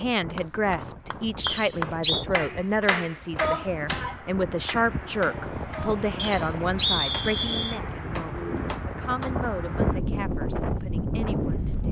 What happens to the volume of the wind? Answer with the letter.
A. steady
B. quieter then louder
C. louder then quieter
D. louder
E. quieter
D.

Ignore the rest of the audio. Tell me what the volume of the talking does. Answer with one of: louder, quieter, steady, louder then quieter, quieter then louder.
quieter.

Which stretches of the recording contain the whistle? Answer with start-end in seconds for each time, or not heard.
1.4-2.2, 6.2-7.8.